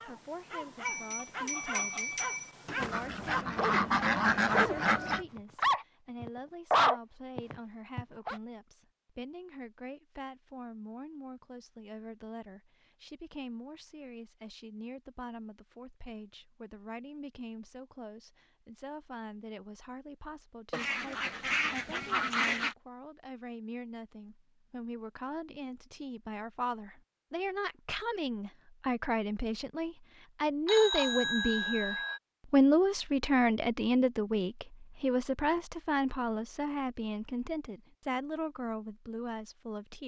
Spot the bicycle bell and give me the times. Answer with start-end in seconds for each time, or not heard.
0.8-2.8, 30.6-32.2.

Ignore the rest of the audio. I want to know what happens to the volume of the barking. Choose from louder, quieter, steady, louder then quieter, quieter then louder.
louder.